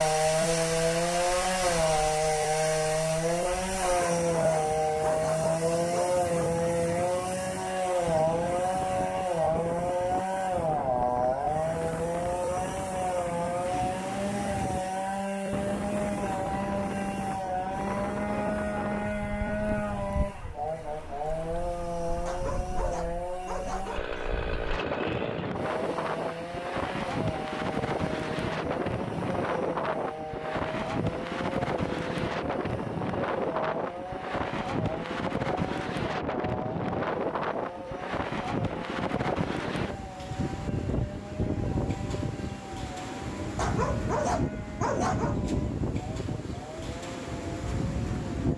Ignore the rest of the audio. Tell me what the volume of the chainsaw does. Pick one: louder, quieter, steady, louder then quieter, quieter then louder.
quieter.